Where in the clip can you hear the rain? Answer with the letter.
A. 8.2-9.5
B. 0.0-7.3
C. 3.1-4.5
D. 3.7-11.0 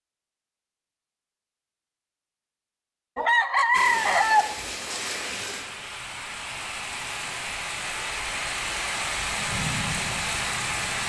D.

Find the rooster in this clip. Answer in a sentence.
The rooster can be heard from 3.1 to 4.5 s.